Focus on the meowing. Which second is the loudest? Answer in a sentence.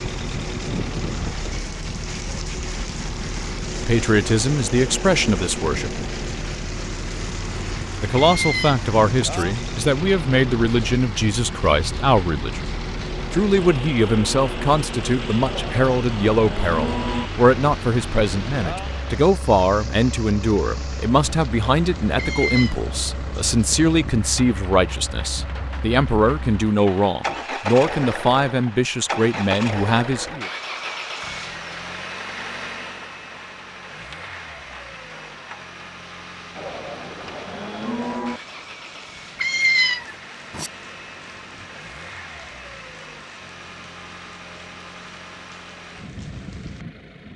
The loudest moment of the meowing is at 40 seconds.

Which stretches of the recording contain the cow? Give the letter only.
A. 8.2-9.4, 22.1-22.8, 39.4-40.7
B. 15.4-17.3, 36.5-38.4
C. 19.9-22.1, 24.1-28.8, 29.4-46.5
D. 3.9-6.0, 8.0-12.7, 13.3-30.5
B.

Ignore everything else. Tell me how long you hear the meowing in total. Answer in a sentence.
The meowing can be heard for 3 seconds in total.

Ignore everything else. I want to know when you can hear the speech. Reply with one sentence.
The speech can be heard from 3.9 to 6.0 s, from 8.0 to 12.7 s and from 13.3 to 30.5 s.